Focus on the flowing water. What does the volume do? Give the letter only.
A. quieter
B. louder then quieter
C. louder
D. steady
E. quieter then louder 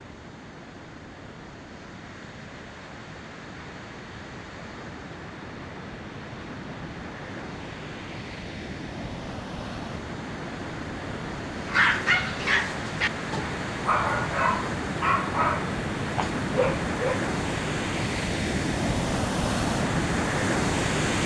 C.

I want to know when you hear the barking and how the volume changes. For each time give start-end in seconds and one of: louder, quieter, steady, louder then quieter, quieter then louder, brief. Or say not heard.
11.7-17.2 steady.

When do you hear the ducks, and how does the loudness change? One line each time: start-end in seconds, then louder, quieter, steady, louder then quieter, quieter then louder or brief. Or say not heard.
not heard.